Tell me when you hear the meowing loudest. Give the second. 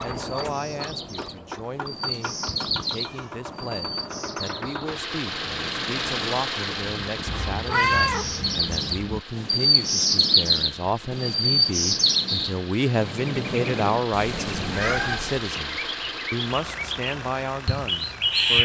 8 s.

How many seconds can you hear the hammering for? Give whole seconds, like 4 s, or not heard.
not heard.